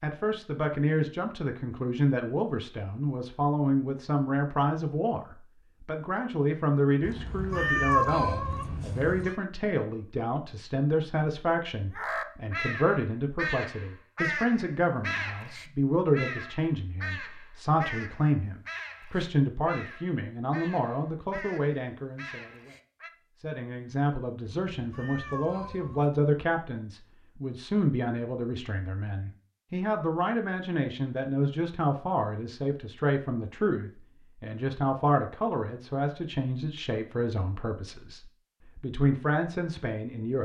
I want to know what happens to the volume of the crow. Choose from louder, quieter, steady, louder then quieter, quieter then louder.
quieter.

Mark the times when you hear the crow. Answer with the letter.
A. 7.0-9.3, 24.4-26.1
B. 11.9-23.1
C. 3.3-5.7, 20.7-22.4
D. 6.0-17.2
B.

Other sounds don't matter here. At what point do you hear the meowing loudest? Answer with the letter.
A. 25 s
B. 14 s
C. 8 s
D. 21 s
C.